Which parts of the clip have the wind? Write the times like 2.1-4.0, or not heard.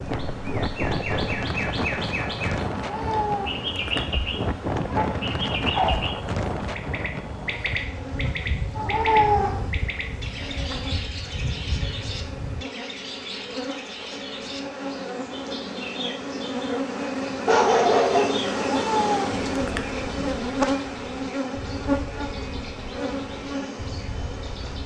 0.0-12.7.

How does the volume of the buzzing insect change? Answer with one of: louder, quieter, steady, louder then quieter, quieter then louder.
louder.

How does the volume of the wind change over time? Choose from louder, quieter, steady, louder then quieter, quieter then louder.
quieter.